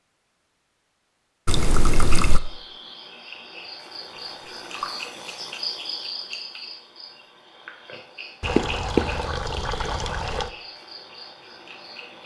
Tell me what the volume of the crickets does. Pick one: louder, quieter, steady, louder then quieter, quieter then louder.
louder then quieter.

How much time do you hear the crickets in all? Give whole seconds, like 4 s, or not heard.
10 s.